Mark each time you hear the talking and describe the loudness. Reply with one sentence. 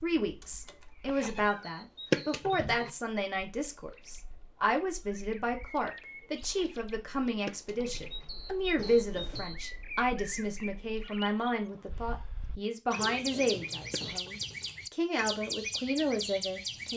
The talking can be heard from 0.0 to 16.9 s, at a steady volume.